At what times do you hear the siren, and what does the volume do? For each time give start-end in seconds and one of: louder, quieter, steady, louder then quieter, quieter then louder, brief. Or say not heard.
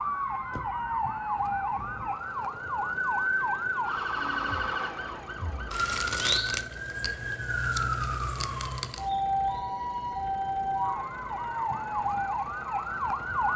0.0-13.5 steady.